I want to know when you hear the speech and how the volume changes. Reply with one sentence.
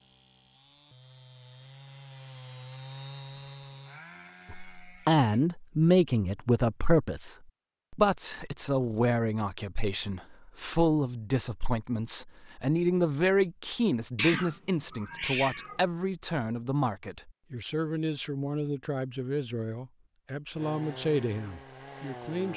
You can hear the speech from 4.5 to 22.5 s, getting quieter.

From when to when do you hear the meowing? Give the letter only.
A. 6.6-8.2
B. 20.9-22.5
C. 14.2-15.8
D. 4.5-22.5
C.